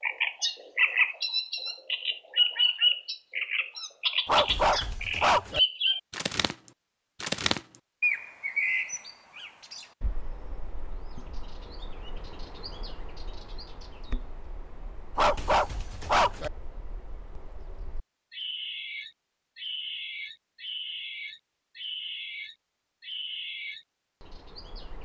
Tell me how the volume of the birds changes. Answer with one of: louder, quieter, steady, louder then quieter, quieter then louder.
quieter then louder.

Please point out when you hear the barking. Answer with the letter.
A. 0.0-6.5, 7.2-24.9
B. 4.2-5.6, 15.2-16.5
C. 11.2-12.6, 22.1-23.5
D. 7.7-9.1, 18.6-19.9
B.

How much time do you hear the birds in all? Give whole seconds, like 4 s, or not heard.
24 s.